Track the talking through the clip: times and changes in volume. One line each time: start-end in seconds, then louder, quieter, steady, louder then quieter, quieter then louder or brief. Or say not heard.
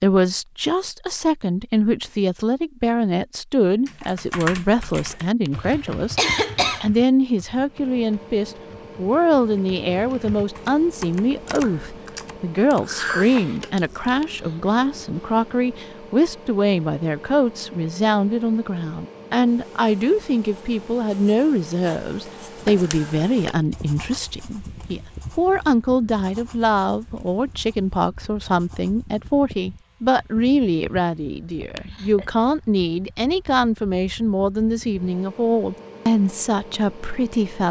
0.0-37.6 steady.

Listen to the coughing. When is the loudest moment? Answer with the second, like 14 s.
6 s.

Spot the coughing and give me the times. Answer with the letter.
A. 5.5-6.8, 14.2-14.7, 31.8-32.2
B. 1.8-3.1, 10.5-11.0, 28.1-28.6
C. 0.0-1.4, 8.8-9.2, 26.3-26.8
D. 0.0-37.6
A.